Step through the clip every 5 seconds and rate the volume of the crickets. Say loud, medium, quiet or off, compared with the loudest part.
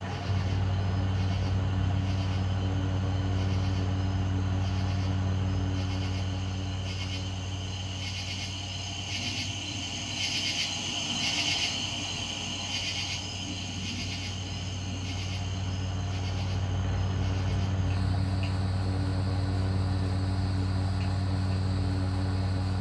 quiet, medium, loud, quiet, quiet.